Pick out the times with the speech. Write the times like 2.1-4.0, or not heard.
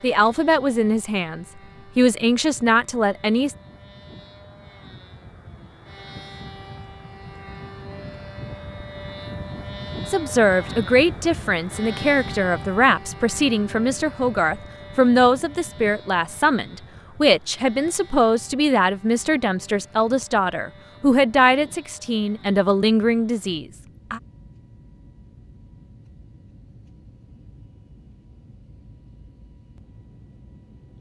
0.0-3.5, 10.1-24.2.